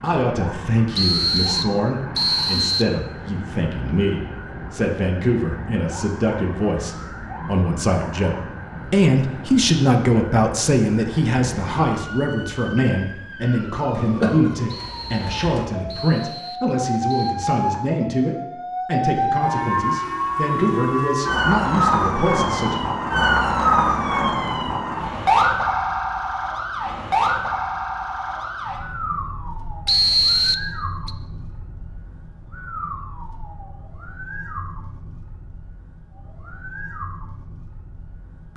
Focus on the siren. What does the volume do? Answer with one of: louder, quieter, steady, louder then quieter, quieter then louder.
louder then quieter.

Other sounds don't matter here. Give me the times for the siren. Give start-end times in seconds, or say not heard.
0.0-38.5.